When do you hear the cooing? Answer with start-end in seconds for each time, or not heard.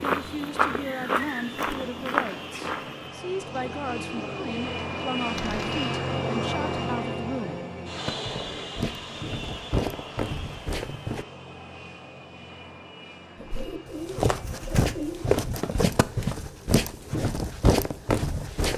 3.4-6.0, 13.3-15.2.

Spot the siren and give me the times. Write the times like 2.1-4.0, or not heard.
not heard.